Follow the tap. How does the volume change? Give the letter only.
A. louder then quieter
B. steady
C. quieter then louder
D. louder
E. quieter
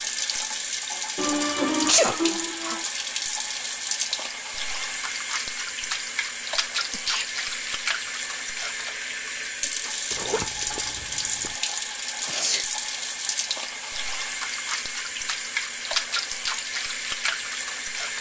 B.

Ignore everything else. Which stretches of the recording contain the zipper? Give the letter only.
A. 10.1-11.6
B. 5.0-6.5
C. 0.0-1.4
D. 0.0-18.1
A.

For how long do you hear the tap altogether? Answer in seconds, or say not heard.
18 s.